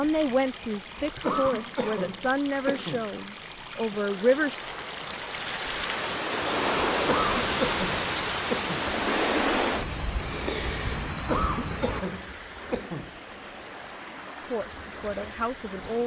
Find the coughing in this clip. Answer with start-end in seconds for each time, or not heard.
1.2-3.1, 7.0-8.8, 11.2-13.2.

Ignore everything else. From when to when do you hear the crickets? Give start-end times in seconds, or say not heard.
0.0-12.1.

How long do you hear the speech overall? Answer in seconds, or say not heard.
6 s.